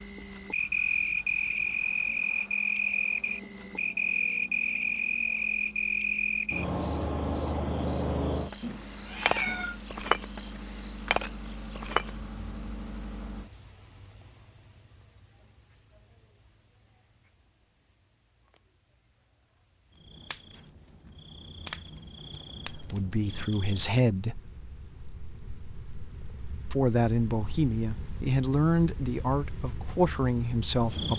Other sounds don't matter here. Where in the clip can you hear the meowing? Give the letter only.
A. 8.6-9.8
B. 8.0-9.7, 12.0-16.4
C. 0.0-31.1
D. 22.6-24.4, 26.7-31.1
A.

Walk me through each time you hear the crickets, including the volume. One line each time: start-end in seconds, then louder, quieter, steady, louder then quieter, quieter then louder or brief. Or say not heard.
0.0-31.1 quieter then louder.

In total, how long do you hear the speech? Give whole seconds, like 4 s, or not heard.
6 s.